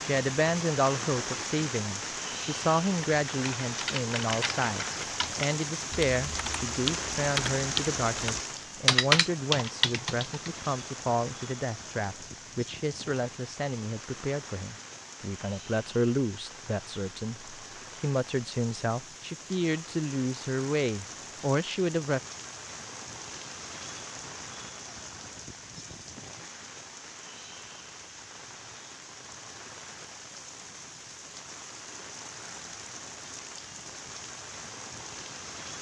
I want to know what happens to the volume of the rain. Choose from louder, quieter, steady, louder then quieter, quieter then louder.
quieter.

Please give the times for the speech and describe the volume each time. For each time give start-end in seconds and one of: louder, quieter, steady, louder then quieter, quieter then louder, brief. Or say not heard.
0.0-22.2 steady.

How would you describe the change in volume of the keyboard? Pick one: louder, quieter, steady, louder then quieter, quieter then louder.
louder.